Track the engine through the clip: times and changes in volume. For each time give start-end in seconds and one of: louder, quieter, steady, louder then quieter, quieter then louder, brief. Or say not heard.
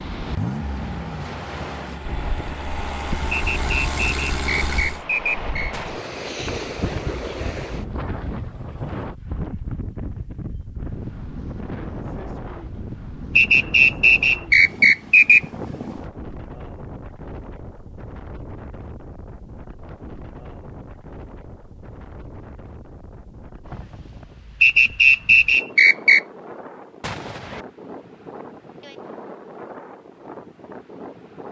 0.1-5.0 louder.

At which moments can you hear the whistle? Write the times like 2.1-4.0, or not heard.
3.3-5.8, 13.3-15.4, 24.6-26.2.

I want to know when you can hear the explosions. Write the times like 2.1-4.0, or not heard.
5.7-6.3, 27.0-27.6.